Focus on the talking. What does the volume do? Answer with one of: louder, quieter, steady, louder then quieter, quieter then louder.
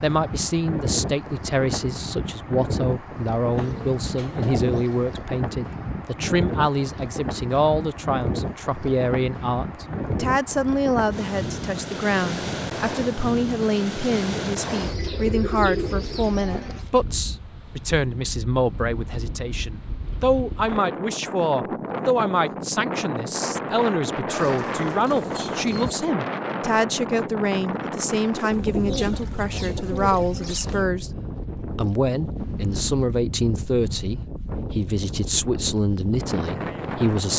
steady.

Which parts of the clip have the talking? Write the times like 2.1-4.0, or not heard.
0.0-31.1, 31.8-37.3.